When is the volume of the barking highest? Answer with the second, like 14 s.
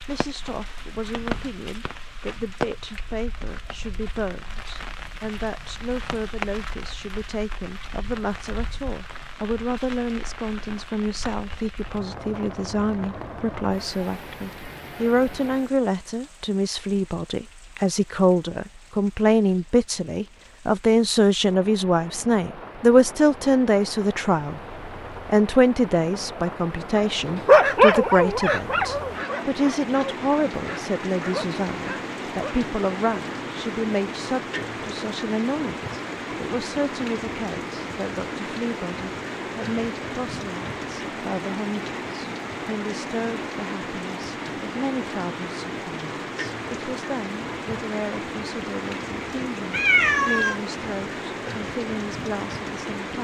28 s.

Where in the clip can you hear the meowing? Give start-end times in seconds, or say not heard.
49.7-50.5.